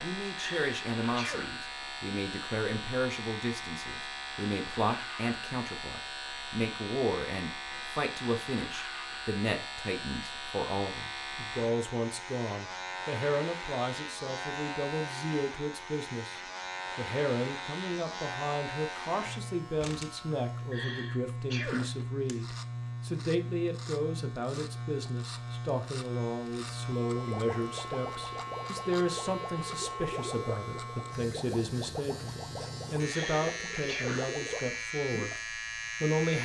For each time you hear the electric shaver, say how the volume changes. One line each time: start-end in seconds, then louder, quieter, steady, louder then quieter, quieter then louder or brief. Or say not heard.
0.0-36.3 steady.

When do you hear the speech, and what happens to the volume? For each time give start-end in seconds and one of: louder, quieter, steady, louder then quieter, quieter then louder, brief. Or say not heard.
0.0-36.3 steady.